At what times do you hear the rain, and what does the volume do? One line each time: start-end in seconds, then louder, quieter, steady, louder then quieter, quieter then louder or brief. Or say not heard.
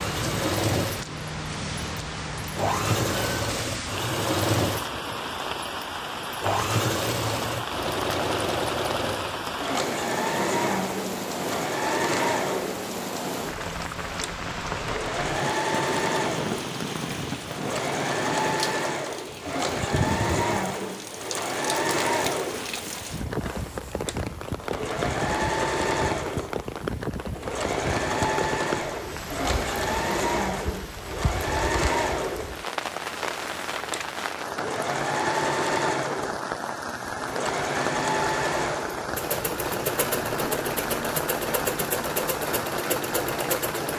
0.0-43.9 steady.